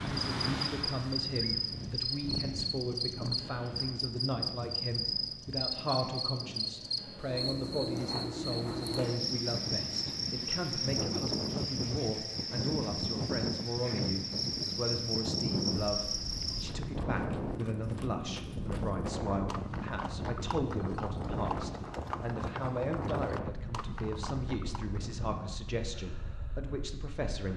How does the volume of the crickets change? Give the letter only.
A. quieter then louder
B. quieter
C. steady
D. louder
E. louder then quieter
C.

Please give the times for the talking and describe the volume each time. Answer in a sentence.
The talking can be heard from 0.0 to 27.5 s, at a steady volume.